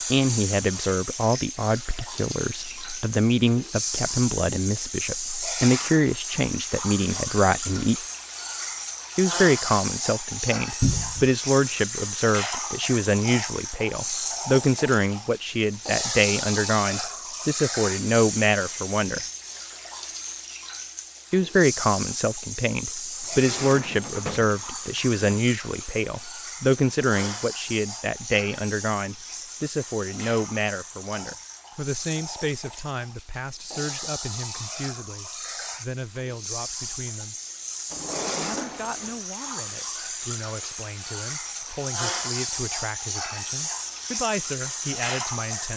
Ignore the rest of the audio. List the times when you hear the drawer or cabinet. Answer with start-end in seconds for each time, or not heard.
10.8-11.3, 23.2-25.2, 37.9-39.2.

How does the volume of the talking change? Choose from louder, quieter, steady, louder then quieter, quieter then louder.
quieter.